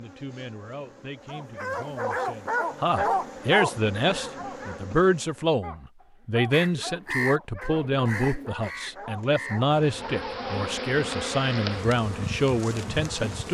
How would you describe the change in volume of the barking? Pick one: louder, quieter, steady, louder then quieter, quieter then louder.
quieter.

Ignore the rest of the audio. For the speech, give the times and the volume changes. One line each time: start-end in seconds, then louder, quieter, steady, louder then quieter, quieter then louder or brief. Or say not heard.
0.0-13.4 louder.